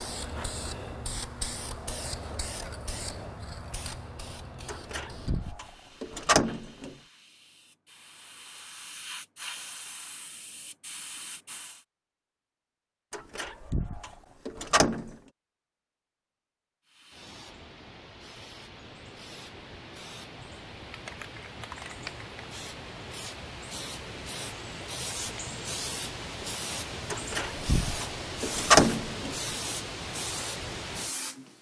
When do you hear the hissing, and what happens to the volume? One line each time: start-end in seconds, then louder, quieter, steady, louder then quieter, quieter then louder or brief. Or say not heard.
0.0-11.8 quieter then louder
16.9-31.5 louder.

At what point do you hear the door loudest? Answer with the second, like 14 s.
29 s.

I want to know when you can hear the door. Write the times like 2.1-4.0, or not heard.
4.7-7.0, 13.1-15.2, 27.1-29.4.